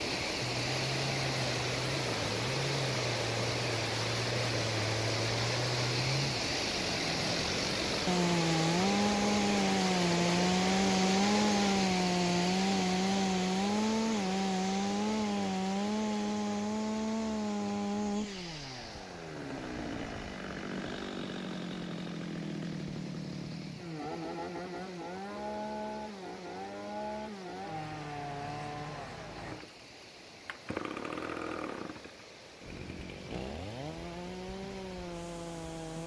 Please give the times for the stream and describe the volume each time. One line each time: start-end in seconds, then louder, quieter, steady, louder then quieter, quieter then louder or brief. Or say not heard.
0.0-36.0 quieter.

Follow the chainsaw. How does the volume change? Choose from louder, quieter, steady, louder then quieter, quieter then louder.
louder then quieter.